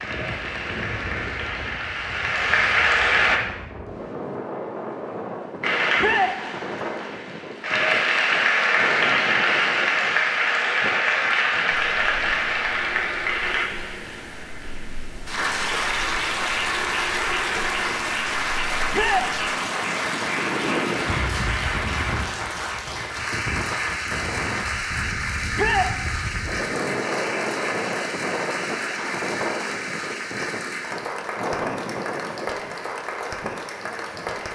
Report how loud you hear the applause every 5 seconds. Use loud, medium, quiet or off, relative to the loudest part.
loud, loud, loud, loud, medium, medium, medium.